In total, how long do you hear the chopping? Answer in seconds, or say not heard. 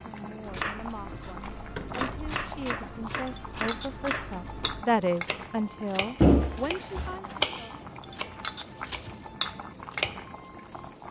10 s.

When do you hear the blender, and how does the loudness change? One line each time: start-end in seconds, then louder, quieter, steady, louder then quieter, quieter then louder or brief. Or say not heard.
not heard.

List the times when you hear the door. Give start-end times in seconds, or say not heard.
1.8-2.3, 6.2-7.2.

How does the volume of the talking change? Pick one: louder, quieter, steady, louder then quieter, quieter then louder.
louder then quieter.